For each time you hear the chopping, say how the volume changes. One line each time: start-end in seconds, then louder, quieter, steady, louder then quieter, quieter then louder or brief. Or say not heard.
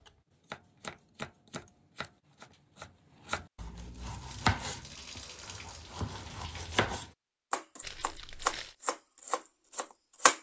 0.0-10.3 louder.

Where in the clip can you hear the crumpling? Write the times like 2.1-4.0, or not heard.
7.8-8.8.